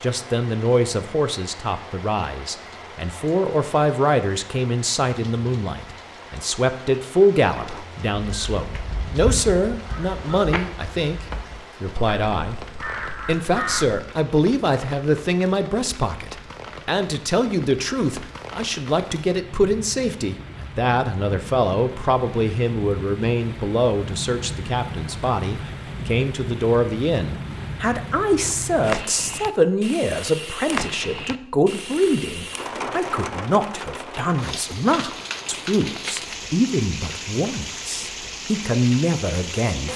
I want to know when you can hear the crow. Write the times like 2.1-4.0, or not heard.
7.5-13.9.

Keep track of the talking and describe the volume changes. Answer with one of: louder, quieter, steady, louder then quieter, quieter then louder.
steady.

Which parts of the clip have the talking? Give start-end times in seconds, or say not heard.
0.0-12.6, 13.2-39.9.